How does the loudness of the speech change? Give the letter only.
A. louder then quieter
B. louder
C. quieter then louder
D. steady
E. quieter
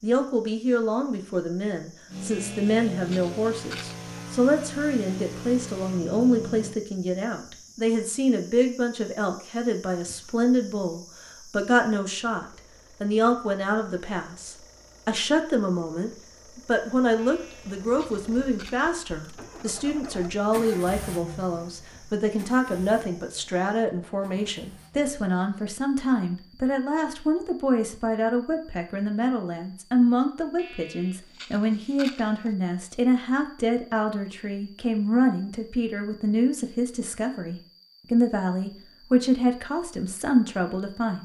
D.